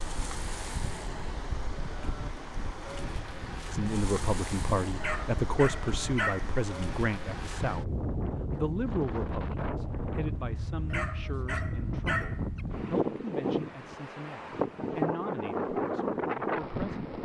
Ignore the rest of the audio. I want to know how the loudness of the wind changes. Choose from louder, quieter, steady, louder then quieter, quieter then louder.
louder.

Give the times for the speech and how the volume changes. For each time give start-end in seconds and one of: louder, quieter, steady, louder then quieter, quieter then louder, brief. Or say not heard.
3.7-17.1 quieter.